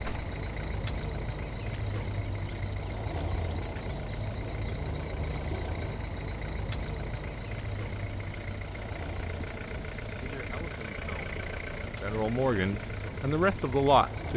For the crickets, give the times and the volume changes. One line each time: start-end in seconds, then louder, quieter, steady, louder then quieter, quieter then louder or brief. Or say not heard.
0.0-14.3 quieter.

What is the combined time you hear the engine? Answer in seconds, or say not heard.
14 s.